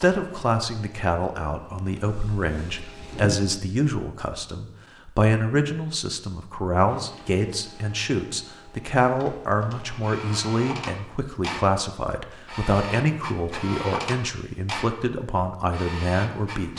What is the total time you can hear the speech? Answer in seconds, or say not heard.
17 s.